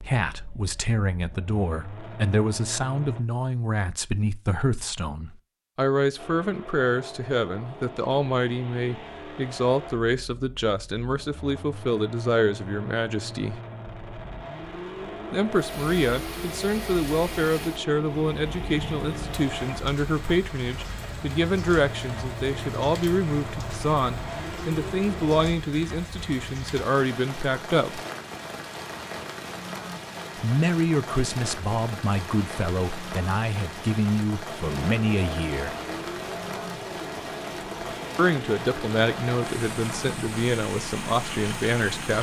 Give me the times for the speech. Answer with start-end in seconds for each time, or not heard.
0.0-13.6, 15.3-28.0, 30.4-35.8, 38.1-42.1.